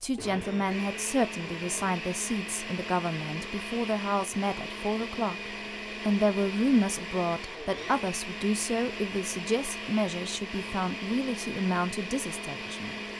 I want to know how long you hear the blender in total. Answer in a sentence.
The blender can be heard for 13 seconds in total.